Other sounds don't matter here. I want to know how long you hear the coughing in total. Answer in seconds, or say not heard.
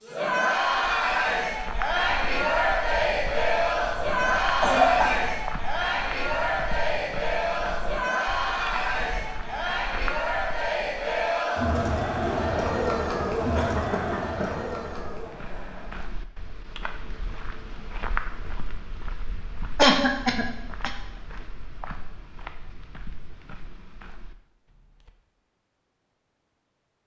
3 s.